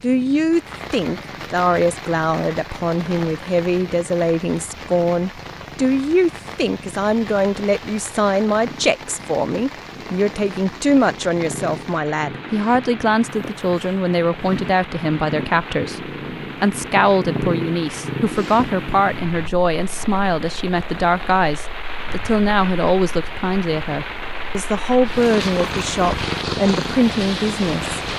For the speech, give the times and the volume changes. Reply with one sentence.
The speech can be heard from 0.0 to 28.0 s, at a steady volume.